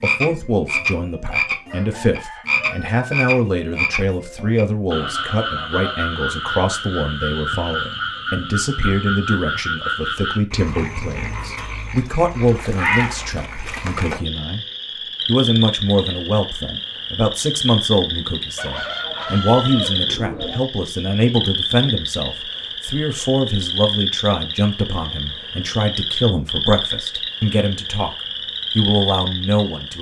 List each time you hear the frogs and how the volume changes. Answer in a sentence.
The frogs can be heard from 0.0 to 29.9 s, at a steady volume.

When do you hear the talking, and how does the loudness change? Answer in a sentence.
You can hear the talking from 0.0 to 29.9 s, at a steady volume.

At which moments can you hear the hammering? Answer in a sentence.
The hammering can't be heard in this clip.